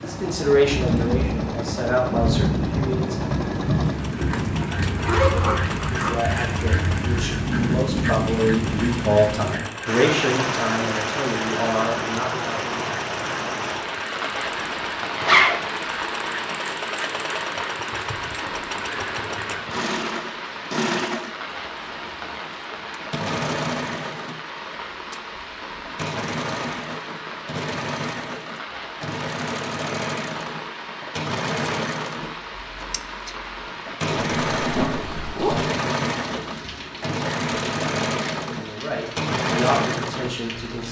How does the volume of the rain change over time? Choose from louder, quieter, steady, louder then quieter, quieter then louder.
quieter.